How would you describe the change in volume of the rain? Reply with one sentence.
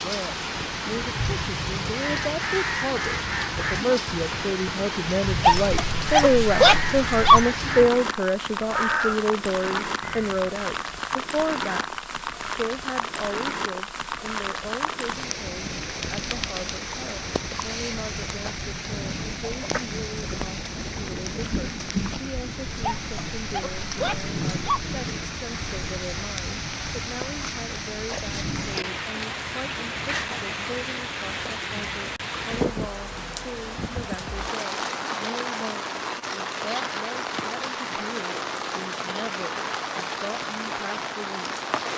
The loudness of the rain stays about the same.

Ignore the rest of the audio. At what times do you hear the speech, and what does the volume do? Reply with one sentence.
You can hear the speech from 0.0 to 41.5 s, getting quieter.